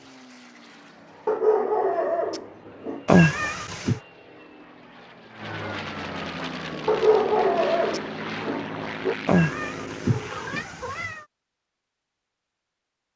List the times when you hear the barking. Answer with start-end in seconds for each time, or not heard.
1.2-3.0, 6.8-9.2.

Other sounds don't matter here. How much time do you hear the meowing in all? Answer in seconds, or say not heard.
3 s.